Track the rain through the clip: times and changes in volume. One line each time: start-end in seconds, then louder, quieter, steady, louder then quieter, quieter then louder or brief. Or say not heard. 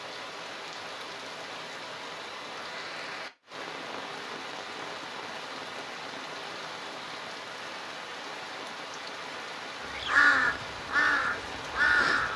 0.0-12.3 steady.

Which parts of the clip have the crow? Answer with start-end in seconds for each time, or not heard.
9.8-12.3.